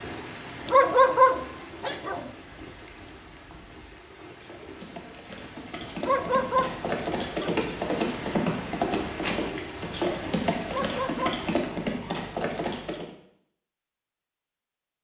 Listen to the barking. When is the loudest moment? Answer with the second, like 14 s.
1 s.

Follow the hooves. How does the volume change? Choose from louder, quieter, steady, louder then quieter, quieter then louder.
louder.